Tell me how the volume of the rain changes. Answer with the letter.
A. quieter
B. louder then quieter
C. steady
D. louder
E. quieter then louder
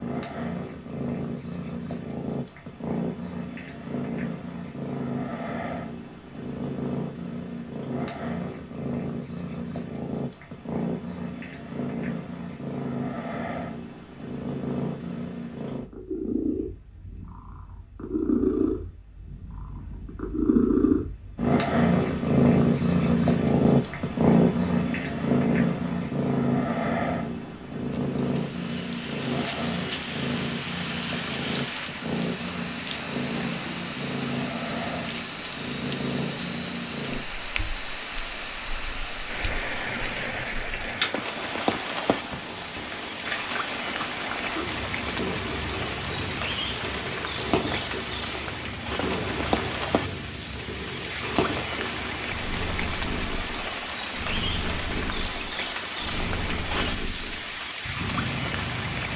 C.